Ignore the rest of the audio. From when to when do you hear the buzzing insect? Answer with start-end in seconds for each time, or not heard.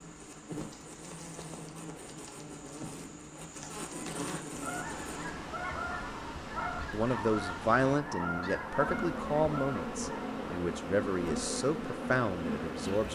0.0-5.3, 8.7-13.1.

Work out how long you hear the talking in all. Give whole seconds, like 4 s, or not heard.
6 s.